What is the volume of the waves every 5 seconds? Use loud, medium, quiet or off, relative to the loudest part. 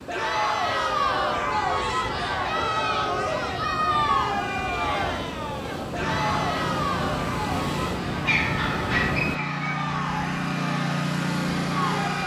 medium, loud, off.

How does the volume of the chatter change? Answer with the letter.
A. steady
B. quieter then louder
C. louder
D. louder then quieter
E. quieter
E.